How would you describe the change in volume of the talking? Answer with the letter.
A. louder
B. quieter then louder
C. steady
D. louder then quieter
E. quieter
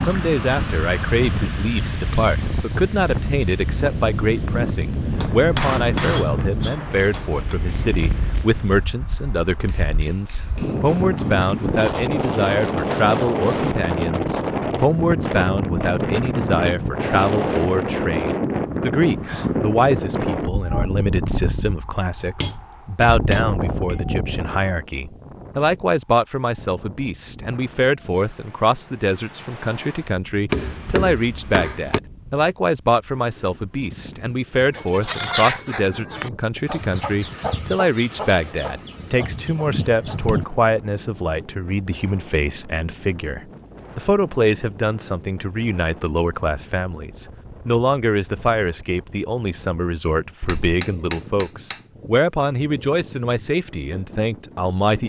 C.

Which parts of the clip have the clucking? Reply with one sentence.
The clucking can be heard from 34.7 to 40.5 s.